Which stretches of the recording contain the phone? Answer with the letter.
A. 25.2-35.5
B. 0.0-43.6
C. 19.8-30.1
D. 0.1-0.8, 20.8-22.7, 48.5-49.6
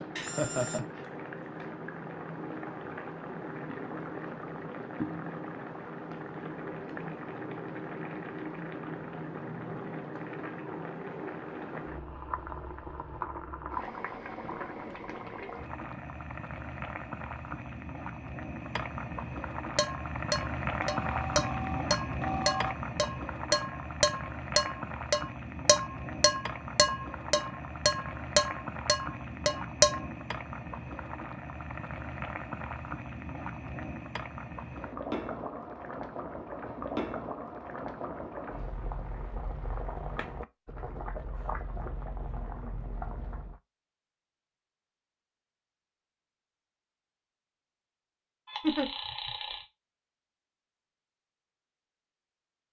D.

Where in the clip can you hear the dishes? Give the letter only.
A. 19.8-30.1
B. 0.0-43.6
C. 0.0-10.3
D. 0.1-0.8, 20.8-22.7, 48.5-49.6
A.